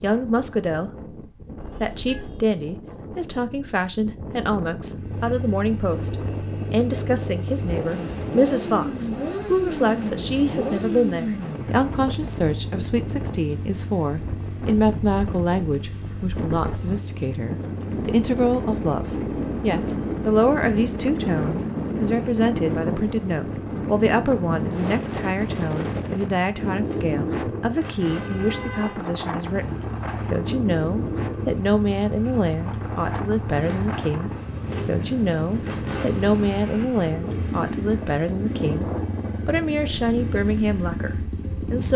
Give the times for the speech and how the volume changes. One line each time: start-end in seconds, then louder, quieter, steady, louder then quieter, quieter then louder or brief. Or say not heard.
0.0-0.9 brief
1.6-41.9 steady.